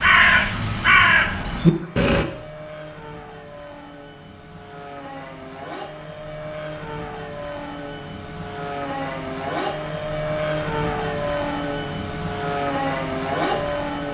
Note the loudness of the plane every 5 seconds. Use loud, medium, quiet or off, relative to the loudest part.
quiet, medium, loud.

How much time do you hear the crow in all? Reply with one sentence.
You can hear the crow for 2 seconds altogether.